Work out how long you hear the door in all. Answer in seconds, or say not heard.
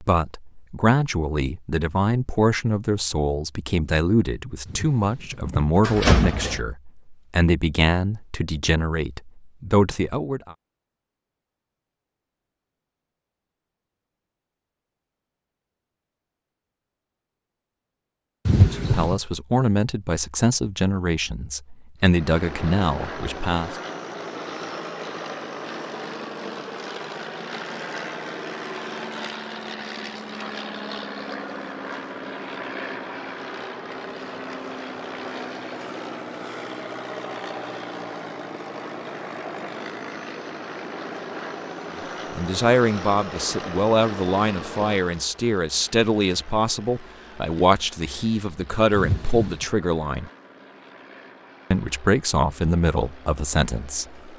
3 s.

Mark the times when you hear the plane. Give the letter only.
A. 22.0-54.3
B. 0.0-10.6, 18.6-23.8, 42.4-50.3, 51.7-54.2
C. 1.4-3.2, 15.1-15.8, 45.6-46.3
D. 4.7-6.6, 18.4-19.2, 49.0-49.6
A.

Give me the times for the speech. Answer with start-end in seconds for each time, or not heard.
0.0-10.6, 18.6-23.8, 42.4-50.3, 51.7-54.2.